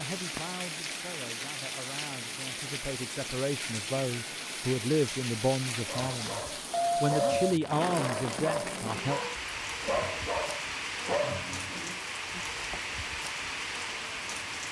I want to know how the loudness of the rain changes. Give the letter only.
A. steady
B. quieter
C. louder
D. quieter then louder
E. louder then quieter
A.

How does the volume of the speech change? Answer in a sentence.
The loudness of the speech goes up.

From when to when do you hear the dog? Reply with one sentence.
You can hear the dog from 5.8 to 12.0 s.